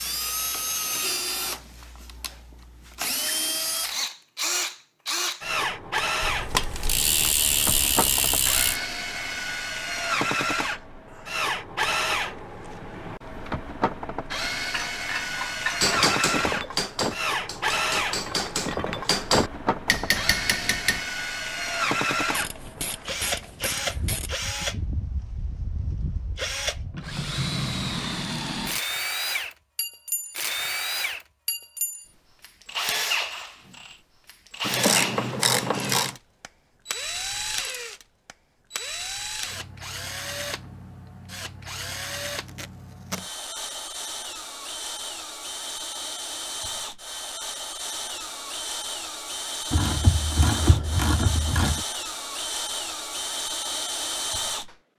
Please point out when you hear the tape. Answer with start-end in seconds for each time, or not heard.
42.2-43.2.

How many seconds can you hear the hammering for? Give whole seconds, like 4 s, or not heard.
5 s.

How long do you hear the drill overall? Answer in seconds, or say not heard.
55 s.